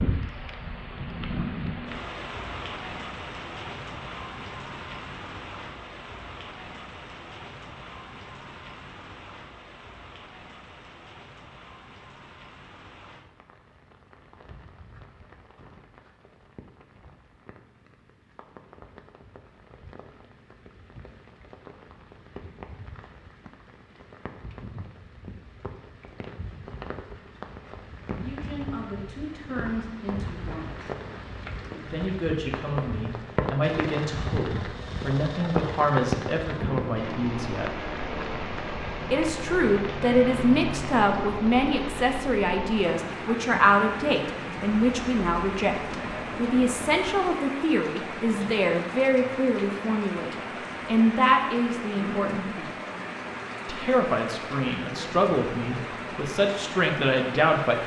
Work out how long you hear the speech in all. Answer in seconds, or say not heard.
26 s.